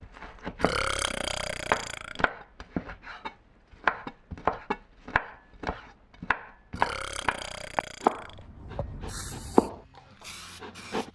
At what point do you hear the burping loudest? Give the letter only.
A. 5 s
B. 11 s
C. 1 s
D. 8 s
C.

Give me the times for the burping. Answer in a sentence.
You can hear the burping from 0.6 to 2.3 s and from 6.8 to 8.4 s.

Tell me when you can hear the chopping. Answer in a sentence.
The chopping can be heard from 0.0 to 0.8 s, from 1.6 to 9.8 s and from 10.6 to 11.1 s.